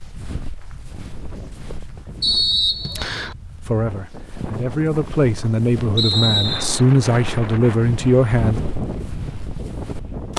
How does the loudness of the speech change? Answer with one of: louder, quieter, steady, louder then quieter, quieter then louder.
louder.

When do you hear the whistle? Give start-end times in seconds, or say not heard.
2.2-3.4, 6.0-6.7.